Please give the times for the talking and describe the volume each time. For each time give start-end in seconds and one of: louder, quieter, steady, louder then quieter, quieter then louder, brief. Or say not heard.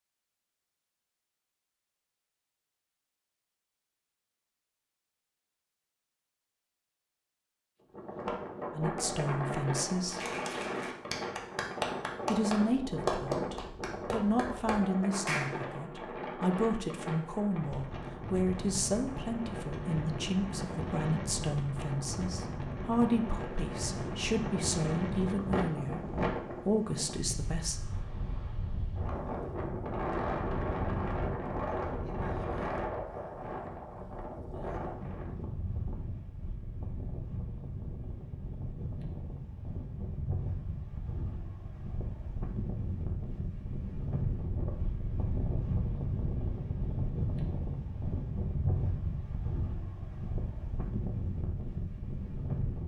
8.7-10.2 brief
12.2-27.8 steady.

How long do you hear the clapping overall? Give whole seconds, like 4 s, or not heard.
6 s.